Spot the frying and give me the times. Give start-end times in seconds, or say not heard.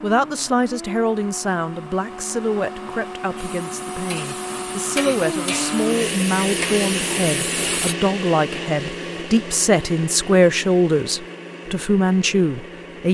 3.4-8.0.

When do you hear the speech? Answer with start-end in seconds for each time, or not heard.
0.0-13.0.